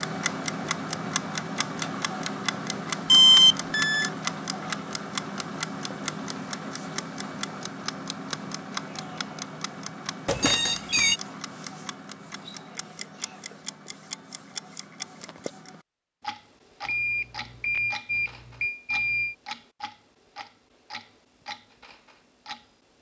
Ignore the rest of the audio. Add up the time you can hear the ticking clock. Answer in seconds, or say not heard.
23 s.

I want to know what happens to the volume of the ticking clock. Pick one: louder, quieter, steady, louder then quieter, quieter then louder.
quieter.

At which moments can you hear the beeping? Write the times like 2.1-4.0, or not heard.
3.0-4.1, 10.2-11.2, 16.9-19.4.